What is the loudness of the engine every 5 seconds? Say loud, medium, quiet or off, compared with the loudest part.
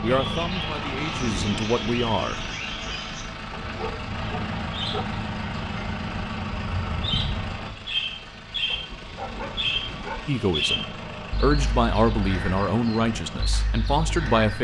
loud, loud, medium.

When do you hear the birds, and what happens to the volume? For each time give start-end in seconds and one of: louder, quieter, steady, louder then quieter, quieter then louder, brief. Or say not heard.
0.0-14.5 louder then quieter.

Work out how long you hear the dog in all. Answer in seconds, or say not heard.
3 s.